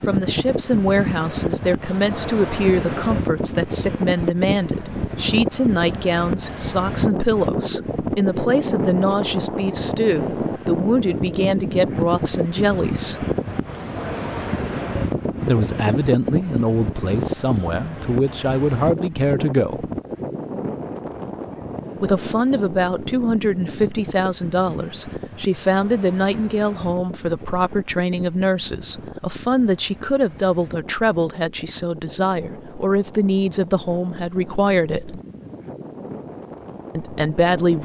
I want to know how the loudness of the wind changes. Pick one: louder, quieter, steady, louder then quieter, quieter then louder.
quieter.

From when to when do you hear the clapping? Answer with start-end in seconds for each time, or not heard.
not heard.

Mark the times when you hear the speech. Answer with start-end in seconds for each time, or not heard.
0.1-13.2, 15.4-19.9, 21.9-35.2, 37.0-37.8.